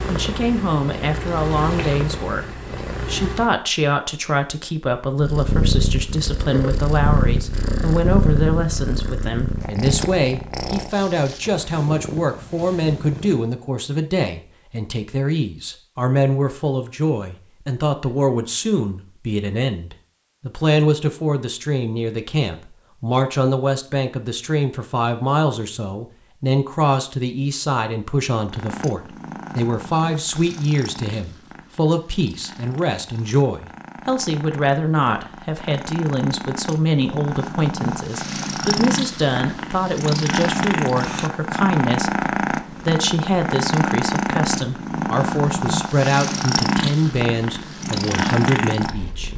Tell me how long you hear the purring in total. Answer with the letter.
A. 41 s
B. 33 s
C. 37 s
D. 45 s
B.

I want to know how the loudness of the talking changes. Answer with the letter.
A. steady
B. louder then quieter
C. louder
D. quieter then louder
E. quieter
A.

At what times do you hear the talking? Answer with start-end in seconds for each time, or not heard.
0.1-49.3.